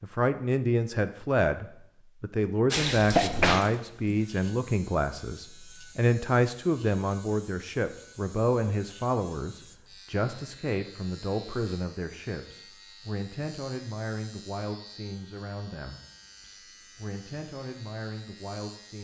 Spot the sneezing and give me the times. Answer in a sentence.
The sneezing can be heard from 2.8 to 3.6 s.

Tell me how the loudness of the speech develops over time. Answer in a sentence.
The volume of the speech goes down.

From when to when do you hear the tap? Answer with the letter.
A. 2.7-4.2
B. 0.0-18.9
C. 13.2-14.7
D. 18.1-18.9
A.